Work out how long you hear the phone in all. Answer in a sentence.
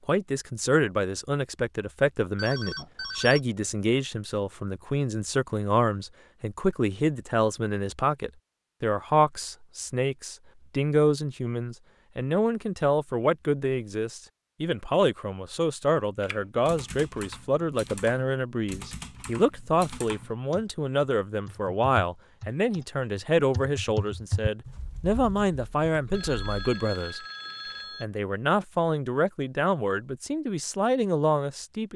The phone can be heard for 3 seconds in total.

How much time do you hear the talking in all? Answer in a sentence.
The talking can be heard for 31 seconds in total.